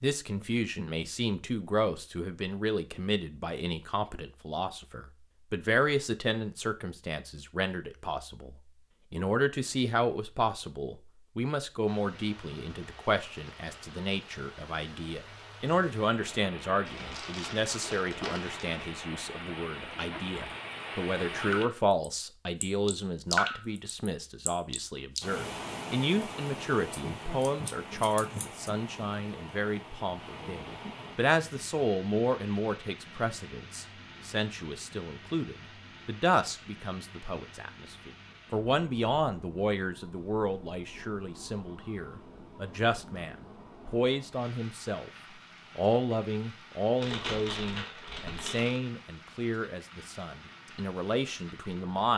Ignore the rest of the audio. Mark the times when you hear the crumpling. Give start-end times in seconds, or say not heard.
16.9-18.9, 47.0-48.8.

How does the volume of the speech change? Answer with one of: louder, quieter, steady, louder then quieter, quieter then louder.
steady.